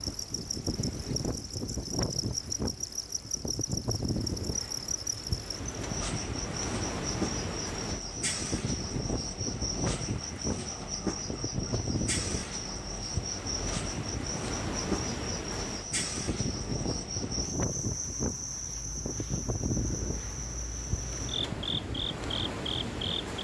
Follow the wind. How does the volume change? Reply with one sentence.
The loudness of the wind stays about the same.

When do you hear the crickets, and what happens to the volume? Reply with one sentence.
The crickets can be heard from 0.0 to 23.4 s, at a steady volume.